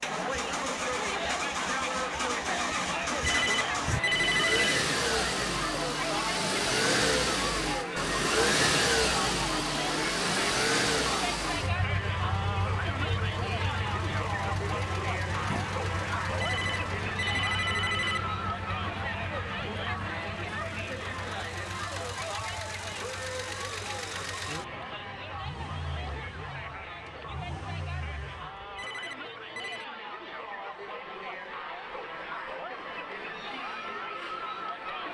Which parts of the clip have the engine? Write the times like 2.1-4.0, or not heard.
0.0-28.9.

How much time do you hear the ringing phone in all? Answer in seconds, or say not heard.
5 s.